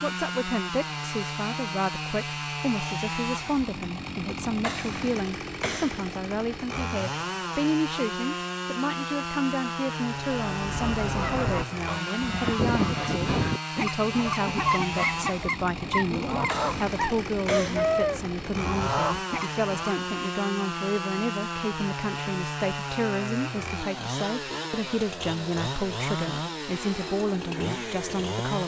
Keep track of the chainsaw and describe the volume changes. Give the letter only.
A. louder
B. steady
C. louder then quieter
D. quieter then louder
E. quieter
B.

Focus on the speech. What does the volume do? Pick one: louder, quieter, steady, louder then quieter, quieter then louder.
steady.